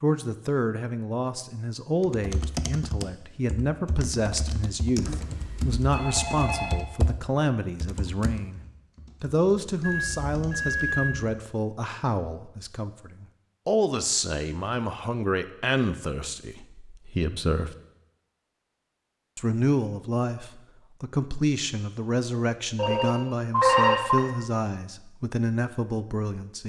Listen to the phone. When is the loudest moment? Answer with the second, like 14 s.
24 s.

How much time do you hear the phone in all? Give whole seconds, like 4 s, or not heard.
5 s.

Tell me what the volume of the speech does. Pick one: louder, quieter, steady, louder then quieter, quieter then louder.
steady.